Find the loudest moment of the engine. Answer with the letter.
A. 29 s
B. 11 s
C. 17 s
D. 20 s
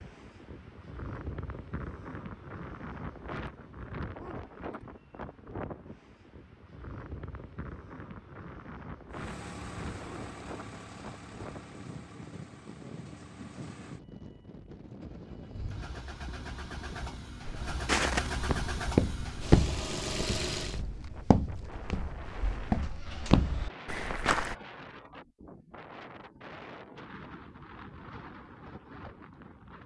D.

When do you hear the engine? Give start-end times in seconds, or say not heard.
9.1-20.8.